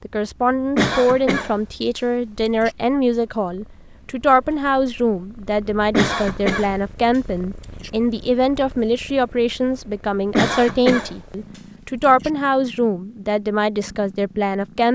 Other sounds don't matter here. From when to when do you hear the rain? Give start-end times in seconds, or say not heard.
not heard.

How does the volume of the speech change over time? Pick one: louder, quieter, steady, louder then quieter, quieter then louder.
steady.